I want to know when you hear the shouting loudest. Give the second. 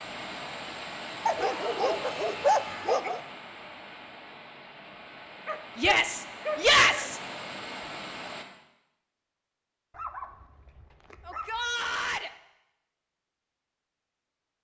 7 s.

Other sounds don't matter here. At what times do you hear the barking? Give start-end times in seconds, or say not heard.
1.2-3.2, 5.5-7.2, 9.9-11.8.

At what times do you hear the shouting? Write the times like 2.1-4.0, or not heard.
1.4-3.0, 5.8-7.2, 11.2-12.3.